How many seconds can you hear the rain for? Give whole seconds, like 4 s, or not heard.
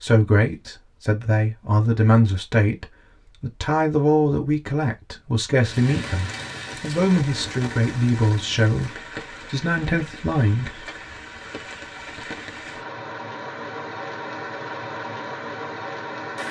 11 s.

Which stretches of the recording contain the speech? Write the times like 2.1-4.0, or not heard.
0.0-10.8.